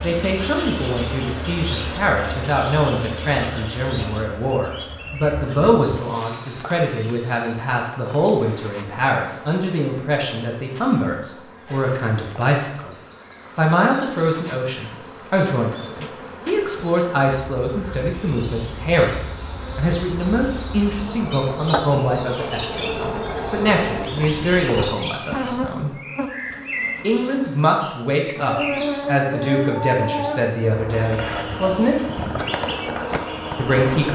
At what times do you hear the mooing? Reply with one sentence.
The mooing can't be heard in this clip.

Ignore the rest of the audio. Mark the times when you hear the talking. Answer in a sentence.
You can hear the talking from 0.0 to 12.9 s, from 13.6 to 25.9 s, from 27.0 to 31.9 s and from 33.5 to 34.0 s.